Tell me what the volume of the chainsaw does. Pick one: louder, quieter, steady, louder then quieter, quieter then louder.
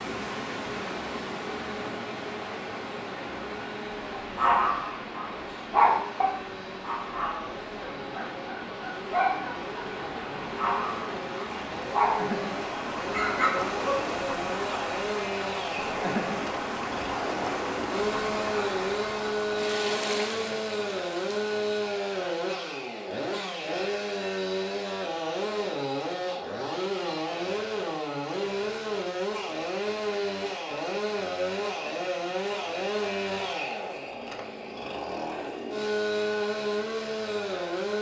louder.